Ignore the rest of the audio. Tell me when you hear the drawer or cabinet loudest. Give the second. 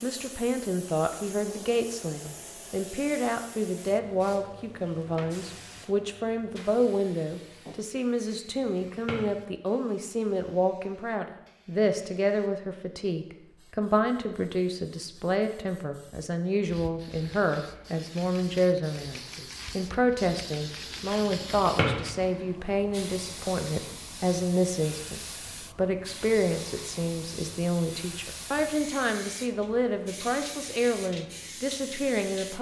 22 s.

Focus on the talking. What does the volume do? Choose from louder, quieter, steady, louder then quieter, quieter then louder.
steady.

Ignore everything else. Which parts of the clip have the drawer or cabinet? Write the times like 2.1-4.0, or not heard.
8.5-9.3, 21.2-22.0.